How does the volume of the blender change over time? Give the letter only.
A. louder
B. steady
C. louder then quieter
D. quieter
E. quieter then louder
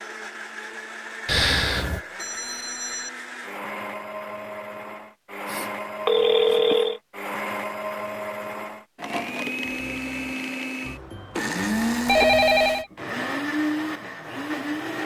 A.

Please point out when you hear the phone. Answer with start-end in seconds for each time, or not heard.
1.2-3.1, 5.5-7.0, 12.1-12.8.